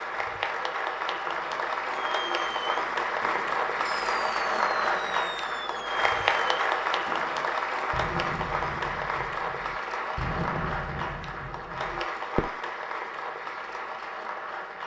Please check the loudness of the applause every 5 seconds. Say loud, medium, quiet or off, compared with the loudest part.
loud, loud, medium.